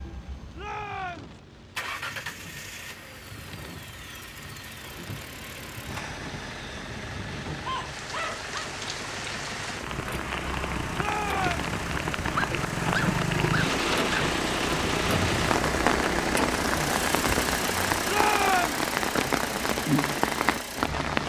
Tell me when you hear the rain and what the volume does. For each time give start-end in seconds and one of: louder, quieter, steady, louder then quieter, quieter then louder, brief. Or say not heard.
0.0-21.2 louder.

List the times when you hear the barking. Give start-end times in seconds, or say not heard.
7.7-8.6, 12.3-14.2.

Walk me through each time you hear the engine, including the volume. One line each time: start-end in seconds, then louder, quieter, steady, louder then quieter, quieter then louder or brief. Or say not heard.
0.0-21.2 louder.